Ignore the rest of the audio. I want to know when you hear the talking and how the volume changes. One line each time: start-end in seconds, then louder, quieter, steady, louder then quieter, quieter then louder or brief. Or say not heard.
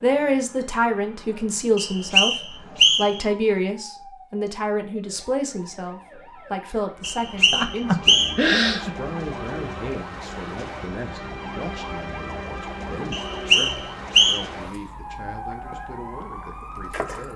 0.0-17.3 quieter.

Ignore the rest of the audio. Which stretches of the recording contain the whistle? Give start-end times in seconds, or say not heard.
1.8-3.2, 7.0-8.5, 13.1-14.4.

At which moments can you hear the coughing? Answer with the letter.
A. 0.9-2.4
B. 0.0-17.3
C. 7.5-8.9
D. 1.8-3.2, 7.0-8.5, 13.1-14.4
C.